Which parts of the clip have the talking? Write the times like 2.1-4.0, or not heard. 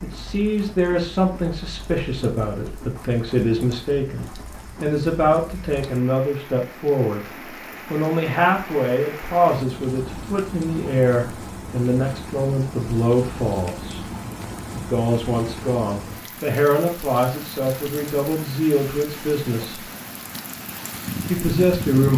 0.0-7.2, 7.9-14.0, 14.7-19.9, 21.2-22.1.